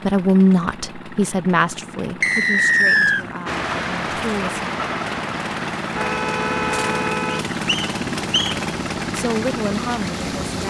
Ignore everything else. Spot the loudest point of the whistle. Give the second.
3 s.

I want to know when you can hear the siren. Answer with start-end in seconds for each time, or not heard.
not heard.